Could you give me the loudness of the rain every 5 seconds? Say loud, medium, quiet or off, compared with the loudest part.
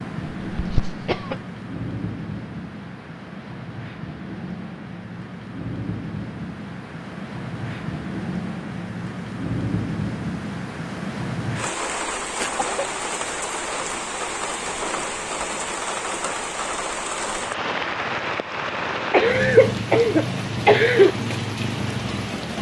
medium, loud, loud, loud, loud.